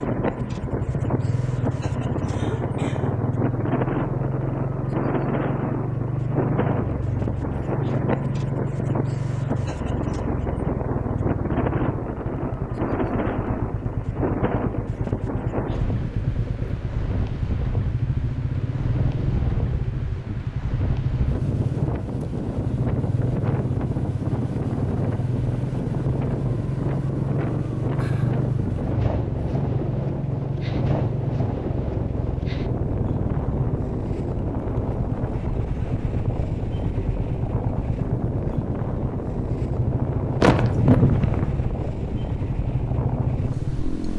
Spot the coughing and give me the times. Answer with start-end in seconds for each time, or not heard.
2.2-3.2, 40.4-41.5.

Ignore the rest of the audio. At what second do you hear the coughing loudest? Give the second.
41 s.